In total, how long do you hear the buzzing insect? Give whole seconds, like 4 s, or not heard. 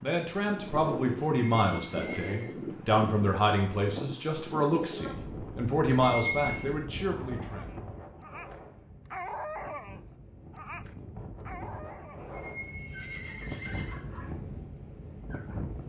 not heard.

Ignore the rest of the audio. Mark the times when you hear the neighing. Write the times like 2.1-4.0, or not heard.
1.6-2.5, 6.0-6.8, 12.3-13.9.